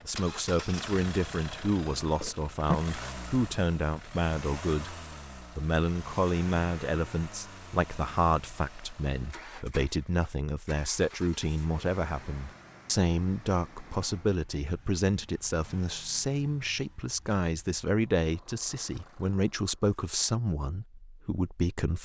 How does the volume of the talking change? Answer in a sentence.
The volume of the talking stays about the same.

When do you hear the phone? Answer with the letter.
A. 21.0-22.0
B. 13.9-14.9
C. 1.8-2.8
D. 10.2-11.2
C.